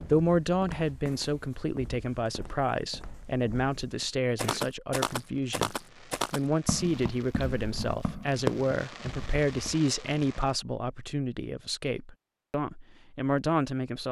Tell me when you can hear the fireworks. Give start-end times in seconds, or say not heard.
5.1-10.5.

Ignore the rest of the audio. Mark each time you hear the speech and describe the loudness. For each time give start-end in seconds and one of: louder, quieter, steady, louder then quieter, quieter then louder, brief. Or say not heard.
0.0-14.0 steady.